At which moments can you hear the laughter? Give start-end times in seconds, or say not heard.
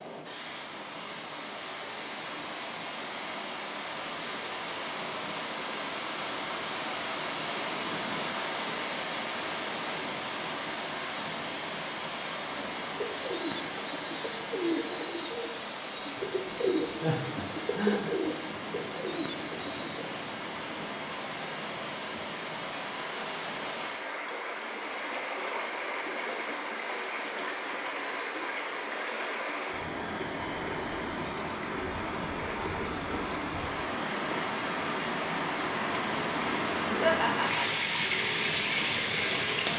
17.0-18.1, 36.9-37.6.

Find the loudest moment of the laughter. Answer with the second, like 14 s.
37 s.